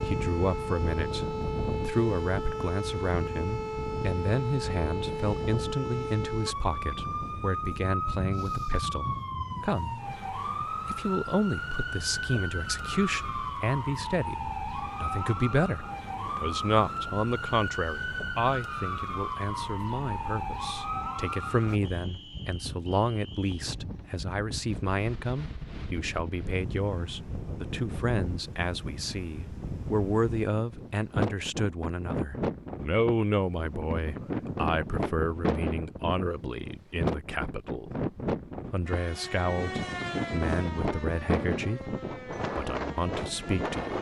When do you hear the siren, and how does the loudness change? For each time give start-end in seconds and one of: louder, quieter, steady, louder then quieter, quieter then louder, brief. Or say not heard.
0.0-21.8 steady
38.9-43.9 quieter.